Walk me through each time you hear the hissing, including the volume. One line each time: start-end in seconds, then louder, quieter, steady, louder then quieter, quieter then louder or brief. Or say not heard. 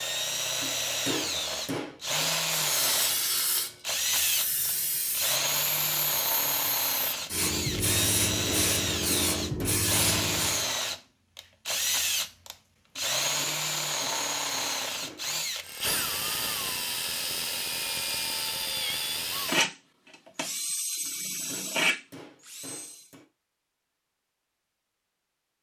2.6-10.7 quieter then louder.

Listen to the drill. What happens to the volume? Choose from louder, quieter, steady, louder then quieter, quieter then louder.
steady.